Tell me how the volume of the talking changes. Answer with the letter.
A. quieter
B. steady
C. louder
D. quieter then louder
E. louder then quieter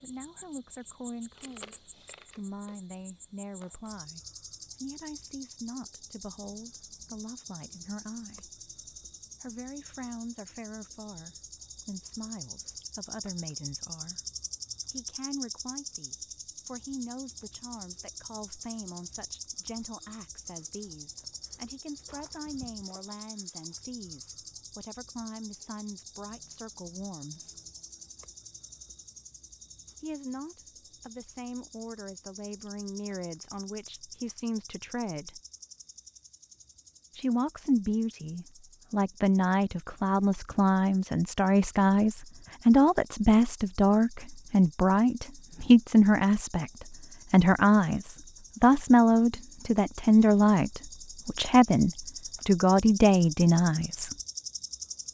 C.